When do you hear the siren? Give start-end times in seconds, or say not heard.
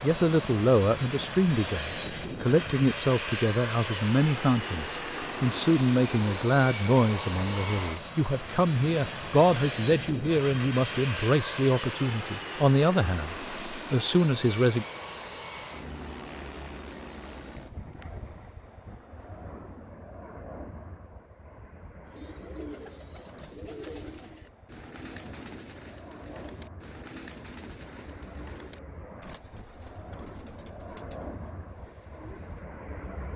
not heard.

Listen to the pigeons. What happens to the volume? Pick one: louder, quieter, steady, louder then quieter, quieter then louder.
quieter.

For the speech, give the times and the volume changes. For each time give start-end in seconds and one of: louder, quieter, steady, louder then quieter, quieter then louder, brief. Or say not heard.
0.0-14.8 steady.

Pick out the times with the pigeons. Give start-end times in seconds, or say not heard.
22.1-32.6.